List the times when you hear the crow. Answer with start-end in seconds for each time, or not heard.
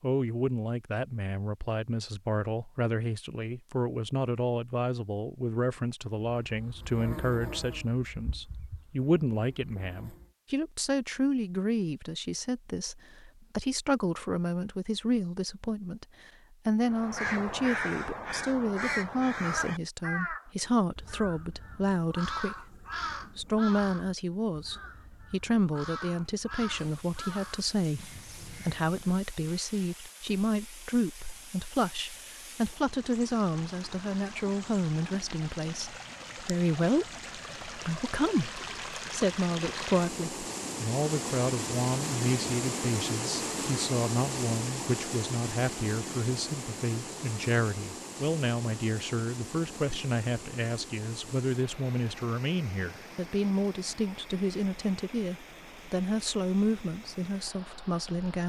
16.9-29.1.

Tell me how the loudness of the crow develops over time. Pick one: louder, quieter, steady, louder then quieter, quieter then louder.
quieter.